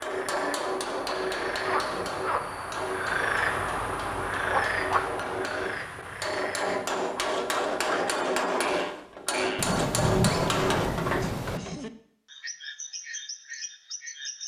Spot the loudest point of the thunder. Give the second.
10 s.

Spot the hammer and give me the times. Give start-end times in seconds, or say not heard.
0.0-11.8.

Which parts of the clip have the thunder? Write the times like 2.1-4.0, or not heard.
9.6-11.6.